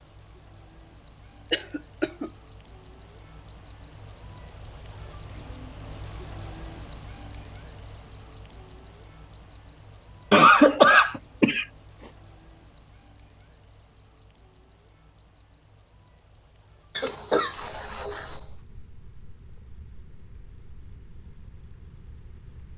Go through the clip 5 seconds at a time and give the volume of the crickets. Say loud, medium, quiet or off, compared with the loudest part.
loud, loud, medium, quiet, quiet.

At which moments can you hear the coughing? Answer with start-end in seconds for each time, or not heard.
1.5-2.3, 10.3-11.7, 16.9-18.4.